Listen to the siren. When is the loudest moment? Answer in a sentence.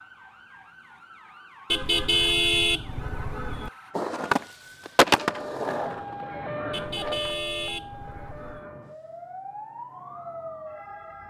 The loudest moment of the siren is at 7 seconds.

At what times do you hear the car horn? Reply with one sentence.
The car horn can be heard from 1.7 to 3.7 s and from 6.7 to 8.7 s.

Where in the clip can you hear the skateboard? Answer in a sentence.
You can hear the skateboard from 4.0 to 7.3 s.